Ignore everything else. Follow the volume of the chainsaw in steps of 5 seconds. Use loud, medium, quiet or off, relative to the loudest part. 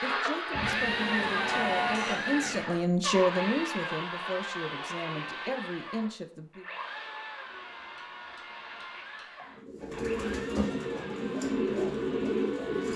loud, medium, quiet.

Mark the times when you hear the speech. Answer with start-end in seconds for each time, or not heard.
0.0-6.7.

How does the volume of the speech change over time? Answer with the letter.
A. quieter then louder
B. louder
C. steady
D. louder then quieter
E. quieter
D.